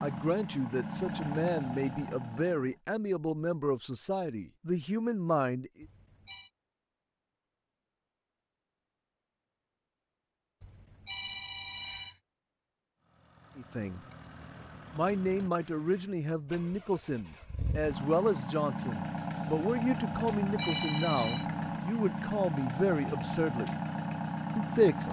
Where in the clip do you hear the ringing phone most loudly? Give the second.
21 s.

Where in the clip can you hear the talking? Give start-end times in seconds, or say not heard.
0.0-5.8, 13.6-14.0, 14.9-23.7, 24.6-25.0.